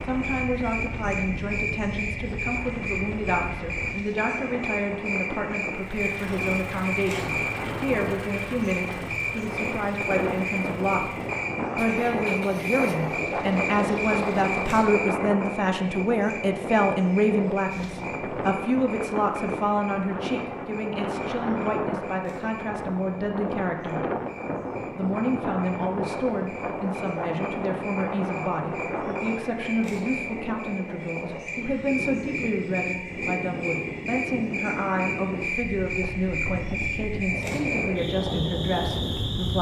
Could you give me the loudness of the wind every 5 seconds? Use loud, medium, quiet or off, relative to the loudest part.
medium, medium, loud, loud, loud, loud, medium, loud.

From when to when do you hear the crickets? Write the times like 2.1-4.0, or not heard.
0.0-39.5.